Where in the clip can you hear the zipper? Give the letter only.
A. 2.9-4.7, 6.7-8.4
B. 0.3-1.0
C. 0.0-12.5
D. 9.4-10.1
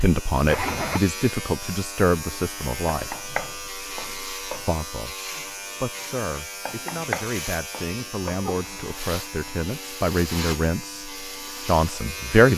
B.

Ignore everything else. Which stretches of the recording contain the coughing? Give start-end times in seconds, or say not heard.
not heard.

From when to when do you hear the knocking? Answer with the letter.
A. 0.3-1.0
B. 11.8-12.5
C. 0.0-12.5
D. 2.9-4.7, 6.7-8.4
D.